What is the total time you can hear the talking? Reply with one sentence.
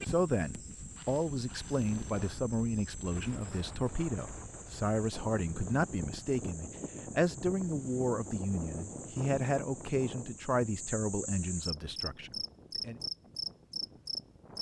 The talking can be heard for 13 seconds in total.